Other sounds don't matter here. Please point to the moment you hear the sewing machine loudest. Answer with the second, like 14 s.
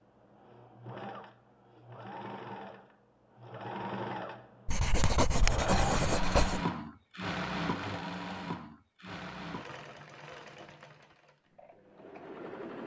6 s.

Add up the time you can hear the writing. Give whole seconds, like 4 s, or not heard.
2 s.